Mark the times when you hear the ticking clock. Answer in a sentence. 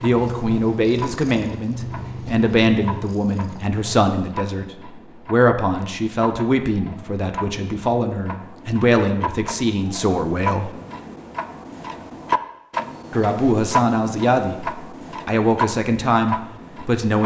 The ticking clock can be heard from 0.0 to 17.2 s.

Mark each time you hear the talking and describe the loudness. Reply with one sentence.
You can hear the talking from 0.0 to 10.7 s, at a steady volume; briefly from 13.1 to 14.7 s; and briefly from 15.2 to 17.2 s.